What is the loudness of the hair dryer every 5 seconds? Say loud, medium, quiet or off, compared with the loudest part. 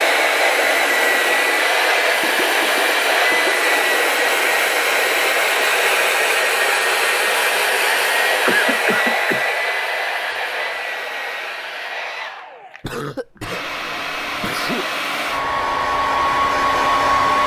loud, loud, medium, loud.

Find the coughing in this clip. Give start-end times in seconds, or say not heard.
2.2-3.6, 8.4-9.4, 12.8-14.8.